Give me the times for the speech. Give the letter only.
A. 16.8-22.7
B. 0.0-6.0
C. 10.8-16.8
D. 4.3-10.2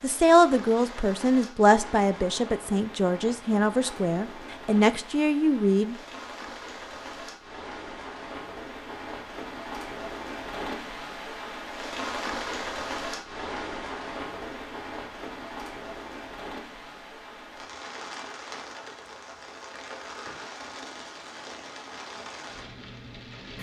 B.